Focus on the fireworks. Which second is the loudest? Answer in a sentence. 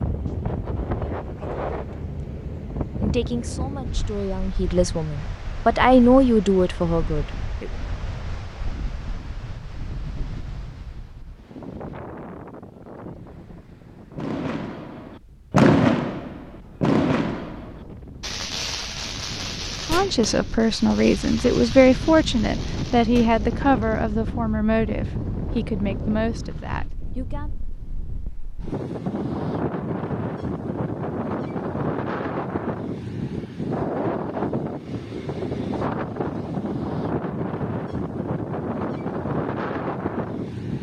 The loudest moment of the fireworks is at 16 seconds.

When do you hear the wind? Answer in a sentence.
You can hear the wind from 0.0 to 40.7 s.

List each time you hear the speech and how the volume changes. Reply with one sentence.
You can hear the speech from 3.0 to 7.7 s, getting louder then quieter; and from 19.9 to 27.5 s, getting quieter.